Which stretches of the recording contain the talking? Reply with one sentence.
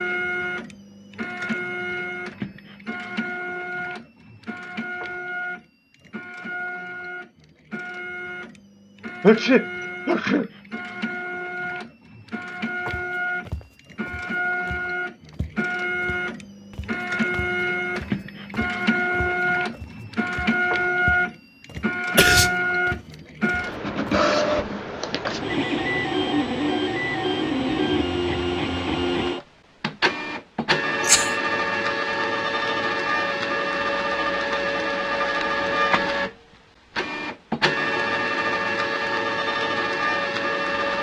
You can't hear the talking here.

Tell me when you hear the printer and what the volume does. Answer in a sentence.
The printer can be heard from 0.0 to 40.9 s, getting louder.